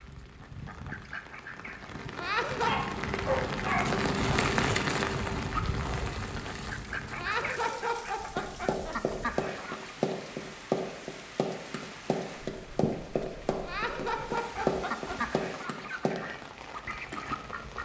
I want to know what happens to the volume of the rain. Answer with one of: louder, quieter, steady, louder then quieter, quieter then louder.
louder then quieter.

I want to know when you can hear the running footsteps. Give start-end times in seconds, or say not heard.
8.3-16.1.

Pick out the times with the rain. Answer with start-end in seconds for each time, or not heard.
0.0-17.8.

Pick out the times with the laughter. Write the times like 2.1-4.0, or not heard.
2.1-2.9, 7.2-9.2, 13.6-15.4.